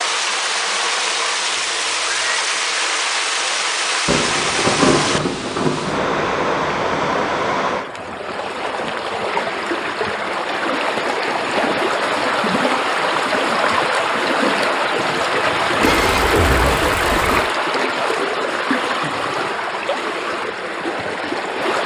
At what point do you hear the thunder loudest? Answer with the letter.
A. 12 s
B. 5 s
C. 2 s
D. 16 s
B.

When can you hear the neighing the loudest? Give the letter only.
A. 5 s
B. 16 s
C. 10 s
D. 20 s
B.